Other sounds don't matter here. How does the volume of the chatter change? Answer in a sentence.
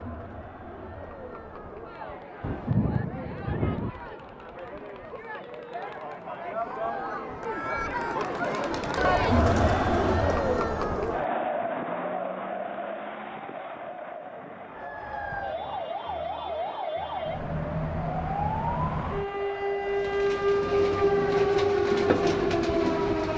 The volume of the chatter goes up, then down.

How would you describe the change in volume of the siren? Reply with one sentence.
The loudness of the siren goes up.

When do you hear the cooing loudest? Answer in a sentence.
The volume of the cooing peaks at 22 seconds.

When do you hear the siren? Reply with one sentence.
The siren can be heard from 14.7 to 23.3 s.